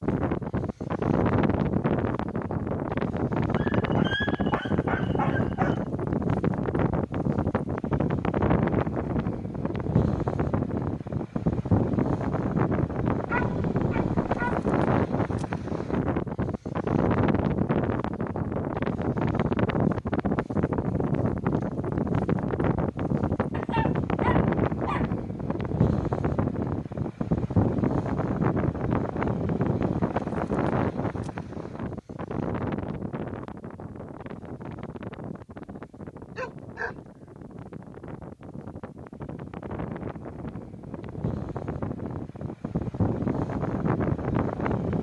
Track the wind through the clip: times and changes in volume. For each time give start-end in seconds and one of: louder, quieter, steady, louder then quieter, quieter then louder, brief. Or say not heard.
0.0-44.9 quieter.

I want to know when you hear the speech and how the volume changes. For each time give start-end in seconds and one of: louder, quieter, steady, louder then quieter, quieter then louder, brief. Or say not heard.
not heard.